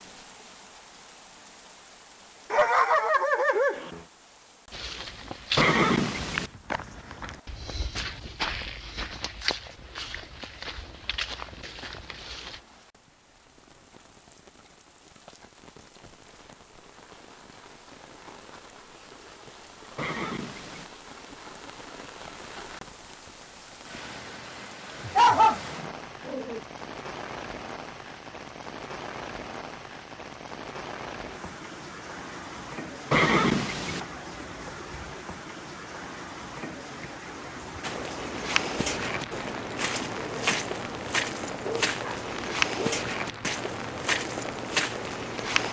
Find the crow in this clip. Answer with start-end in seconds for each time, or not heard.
not heard.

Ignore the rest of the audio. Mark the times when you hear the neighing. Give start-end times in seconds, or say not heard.
5.5-6.5, 19.9-20.9, 33.1-34.0.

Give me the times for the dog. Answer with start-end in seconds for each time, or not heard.
2.5-4.0, 25.1-26.6, 41.5-43.0.